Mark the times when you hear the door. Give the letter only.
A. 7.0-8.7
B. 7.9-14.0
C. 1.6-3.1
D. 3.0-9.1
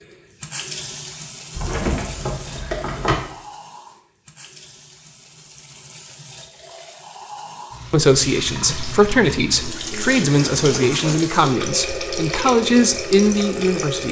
C.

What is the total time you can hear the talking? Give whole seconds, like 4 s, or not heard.
6 s.